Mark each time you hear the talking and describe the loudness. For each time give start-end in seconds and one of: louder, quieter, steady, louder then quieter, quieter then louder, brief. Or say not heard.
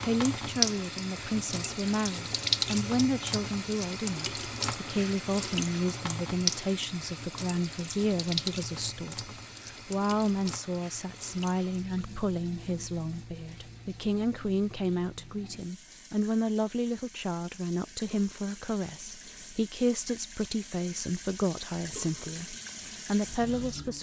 0.0-23.9 steady.